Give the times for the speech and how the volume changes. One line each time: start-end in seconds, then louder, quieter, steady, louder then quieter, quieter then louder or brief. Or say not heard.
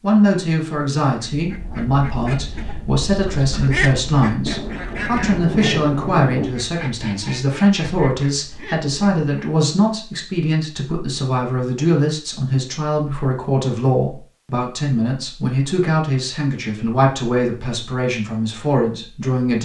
0.0-19.6 steady.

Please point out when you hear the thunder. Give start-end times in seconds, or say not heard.
4.5-6.5.